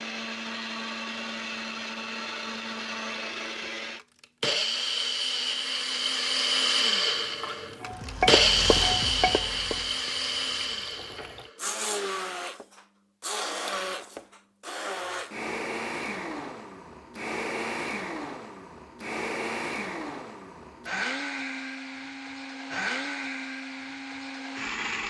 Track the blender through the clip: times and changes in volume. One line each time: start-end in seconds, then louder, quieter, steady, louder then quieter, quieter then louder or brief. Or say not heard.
0.0-25.0 louder then quieter.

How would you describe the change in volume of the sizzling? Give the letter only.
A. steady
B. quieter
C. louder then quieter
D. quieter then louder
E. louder
C.